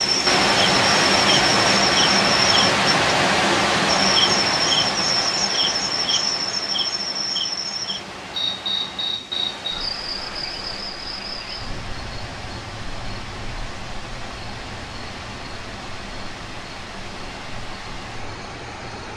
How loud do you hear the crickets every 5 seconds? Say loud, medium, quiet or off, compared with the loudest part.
loud, loud, quiet, quiet.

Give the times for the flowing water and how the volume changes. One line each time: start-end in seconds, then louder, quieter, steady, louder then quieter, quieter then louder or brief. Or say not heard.
0.0-19.1 quieter.